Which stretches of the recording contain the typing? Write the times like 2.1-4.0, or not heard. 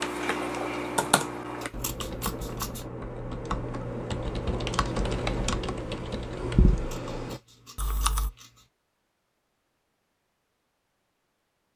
0.0-8.3.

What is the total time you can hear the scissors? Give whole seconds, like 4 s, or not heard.
3 s.